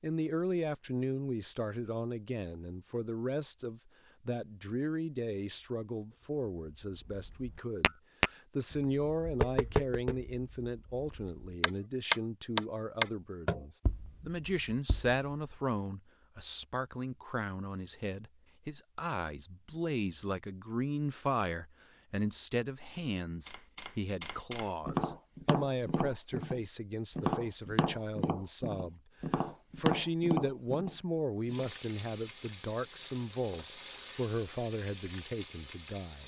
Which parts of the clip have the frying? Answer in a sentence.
You can hear the frying from 31.4 to 36.2 s.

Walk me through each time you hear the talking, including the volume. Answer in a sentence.
You can hear the talking from 0.0 to 36.2 s, at a steady volume.